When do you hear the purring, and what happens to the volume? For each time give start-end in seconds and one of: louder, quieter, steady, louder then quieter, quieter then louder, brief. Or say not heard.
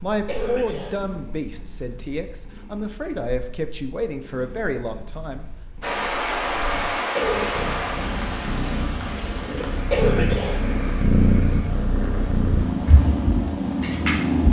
0.0-14.4 louder.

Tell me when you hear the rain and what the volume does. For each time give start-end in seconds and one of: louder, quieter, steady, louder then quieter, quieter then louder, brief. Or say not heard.
5.8-14.4 quieter.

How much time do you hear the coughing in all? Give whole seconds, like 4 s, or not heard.
2 s.